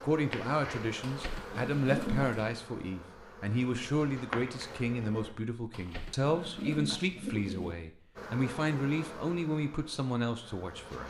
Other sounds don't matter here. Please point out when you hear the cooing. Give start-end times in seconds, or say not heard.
1.0-2.5, 5.7-7.8.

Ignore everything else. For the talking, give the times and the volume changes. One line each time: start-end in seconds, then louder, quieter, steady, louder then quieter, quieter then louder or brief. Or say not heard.
0.0-11.0 steady.